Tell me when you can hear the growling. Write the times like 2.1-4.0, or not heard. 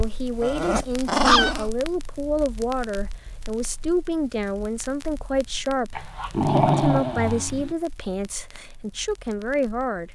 0.4-1.7, 6.0-7.7.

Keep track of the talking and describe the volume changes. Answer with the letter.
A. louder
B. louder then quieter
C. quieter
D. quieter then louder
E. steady
E.